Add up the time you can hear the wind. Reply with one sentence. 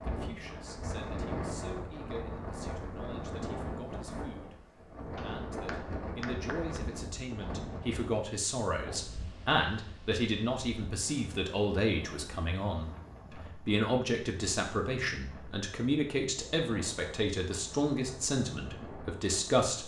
The wind can be heard for 20 seconds in total.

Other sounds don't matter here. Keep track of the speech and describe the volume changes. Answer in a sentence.
The loudness of the speech goes up.